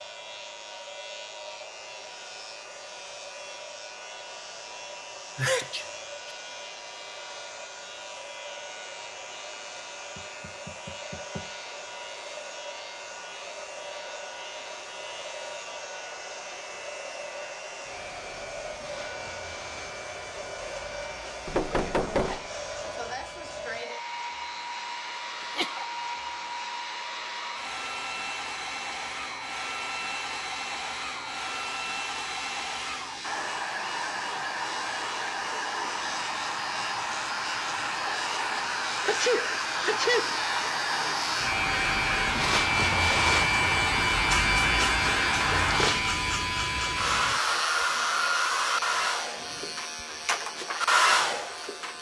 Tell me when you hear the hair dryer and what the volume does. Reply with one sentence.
You can hear the hair dryer from 0.0 to 51.9 s, getting louder.